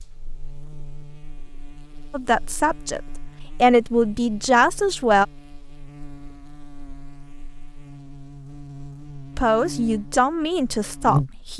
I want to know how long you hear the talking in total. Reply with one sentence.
The talking can be heard for 5 seconds in total.